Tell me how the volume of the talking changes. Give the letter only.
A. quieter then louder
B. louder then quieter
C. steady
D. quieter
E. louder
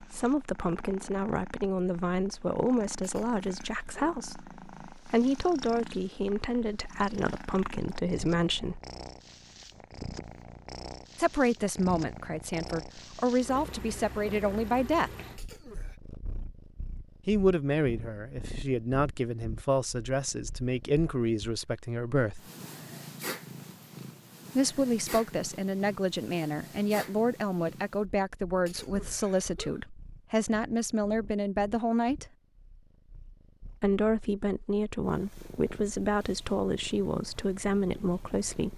C.